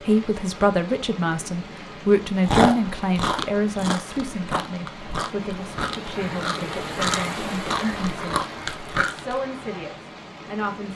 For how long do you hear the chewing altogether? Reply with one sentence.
The chewing can be heard for 7 seconds in total.